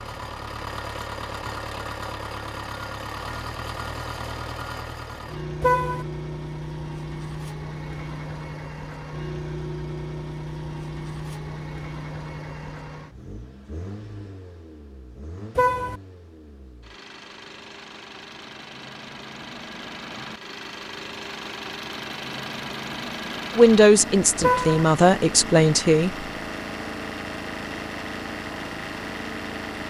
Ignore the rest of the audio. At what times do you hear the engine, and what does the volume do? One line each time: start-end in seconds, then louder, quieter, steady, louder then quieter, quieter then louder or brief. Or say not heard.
0.0-29.8 quieter then louder.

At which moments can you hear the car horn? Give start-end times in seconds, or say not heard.
5.6-6.0, 15.6-16.0, 24.4-24.9.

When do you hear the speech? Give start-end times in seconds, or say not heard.
23.6-26.2.